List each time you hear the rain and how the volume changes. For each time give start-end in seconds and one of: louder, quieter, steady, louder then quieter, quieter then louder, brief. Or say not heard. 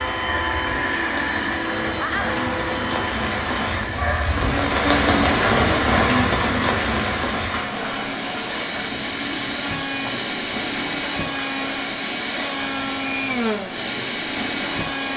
0.0-15.1 louder then quieter.